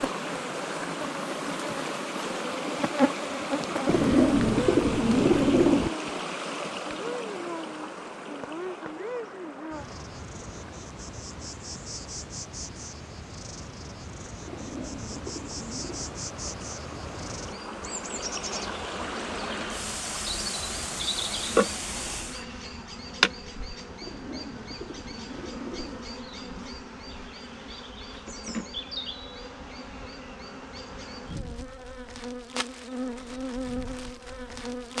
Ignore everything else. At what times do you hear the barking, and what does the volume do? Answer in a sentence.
You can't hear the barking here.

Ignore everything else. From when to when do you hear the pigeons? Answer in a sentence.
The pigeons can be heard from 3.9 to 5.9 s, from 14.4 to 16.1 s and from 24.0 to 26.1 s.